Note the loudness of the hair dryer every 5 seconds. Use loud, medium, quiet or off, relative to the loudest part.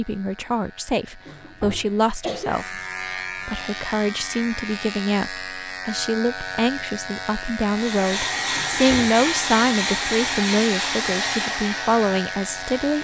off, loud, loud.